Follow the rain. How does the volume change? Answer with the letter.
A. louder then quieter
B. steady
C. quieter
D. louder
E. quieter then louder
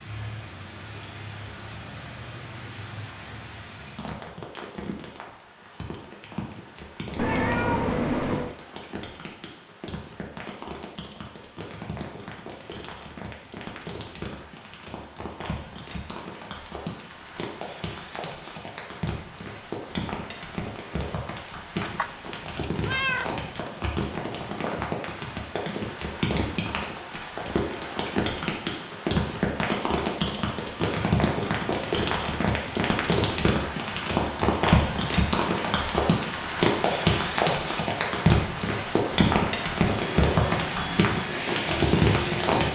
D.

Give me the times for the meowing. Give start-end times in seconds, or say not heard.
7.2-8.6, 21.8-23.4.